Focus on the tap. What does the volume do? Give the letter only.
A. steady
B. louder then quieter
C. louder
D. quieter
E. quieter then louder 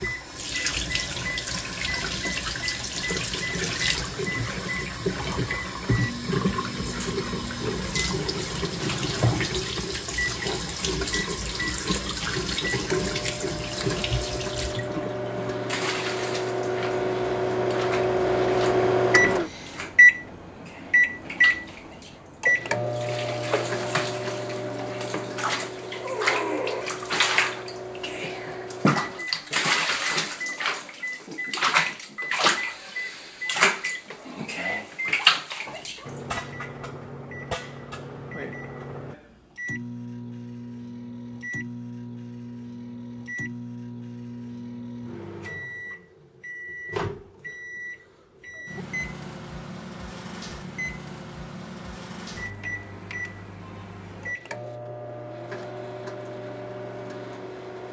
E.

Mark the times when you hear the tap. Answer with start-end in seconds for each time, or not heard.
0.0-36.1.